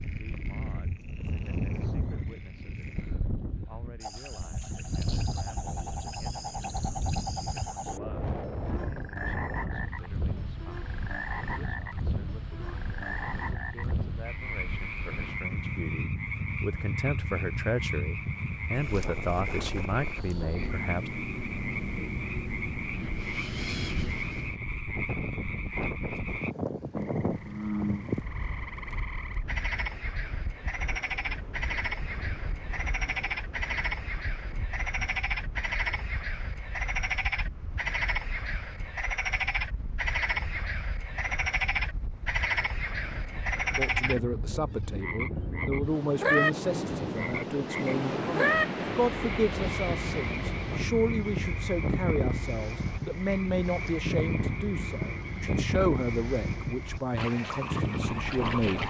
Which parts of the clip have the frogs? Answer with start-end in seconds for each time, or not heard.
0.0-58.8.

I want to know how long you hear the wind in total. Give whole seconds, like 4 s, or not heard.
59 s.